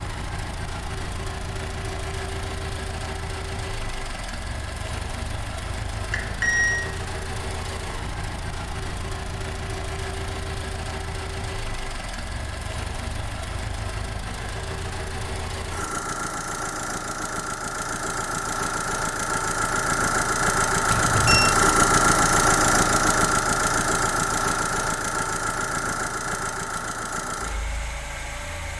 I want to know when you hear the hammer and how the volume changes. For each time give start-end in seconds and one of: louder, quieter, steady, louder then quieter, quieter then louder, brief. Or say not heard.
not heard.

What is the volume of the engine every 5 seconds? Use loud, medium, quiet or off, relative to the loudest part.
quiet, quiet, quiet, medium, loud, medium.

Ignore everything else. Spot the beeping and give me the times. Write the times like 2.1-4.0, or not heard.
6.1-6.8, 20.9-21.6.